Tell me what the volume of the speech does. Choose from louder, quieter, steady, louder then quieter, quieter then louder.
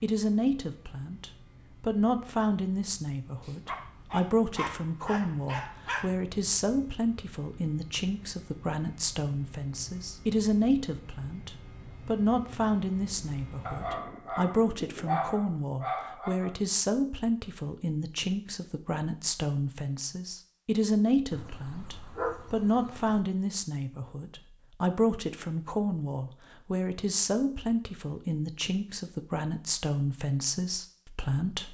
steady.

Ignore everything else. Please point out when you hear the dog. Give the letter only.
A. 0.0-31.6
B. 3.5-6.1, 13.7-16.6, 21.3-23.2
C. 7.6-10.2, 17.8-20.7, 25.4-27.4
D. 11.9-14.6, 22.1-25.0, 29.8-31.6
B.